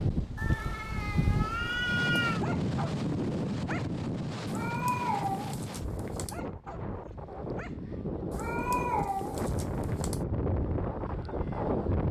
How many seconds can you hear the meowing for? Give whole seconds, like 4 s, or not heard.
6 s.